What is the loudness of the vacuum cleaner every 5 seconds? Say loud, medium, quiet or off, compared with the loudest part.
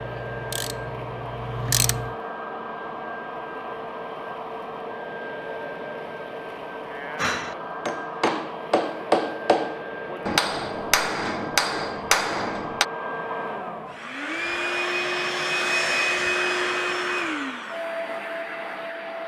medium, medium, medium, loud.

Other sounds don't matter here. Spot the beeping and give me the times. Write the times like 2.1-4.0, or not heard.
not heard.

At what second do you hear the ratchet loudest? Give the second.
2 s.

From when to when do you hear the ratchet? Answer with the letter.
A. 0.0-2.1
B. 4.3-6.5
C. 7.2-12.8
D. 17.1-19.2
A.